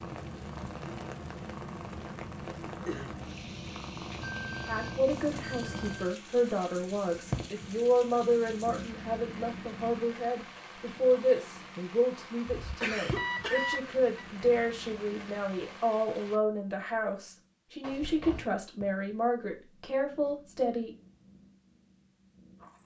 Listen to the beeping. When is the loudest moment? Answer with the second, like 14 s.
14 s.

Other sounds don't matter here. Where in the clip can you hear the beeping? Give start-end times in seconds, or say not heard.
4.1-6.2, 12.4-14.2.